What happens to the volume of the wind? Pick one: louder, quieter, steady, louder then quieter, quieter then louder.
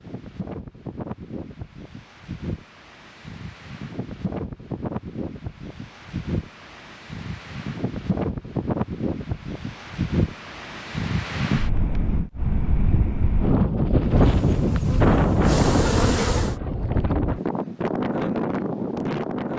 louder.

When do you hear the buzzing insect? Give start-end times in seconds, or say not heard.
14.1-16.6.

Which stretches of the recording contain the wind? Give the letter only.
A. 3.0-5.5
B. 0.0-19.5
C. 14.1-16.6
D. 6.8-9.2
B.